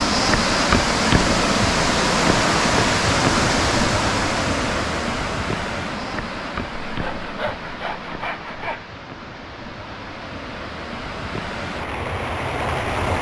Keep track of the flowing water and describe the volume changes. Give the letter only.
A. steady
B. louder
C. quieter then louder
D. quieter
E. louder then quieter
C.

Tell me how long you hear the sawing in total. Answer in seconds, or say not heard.
2 s.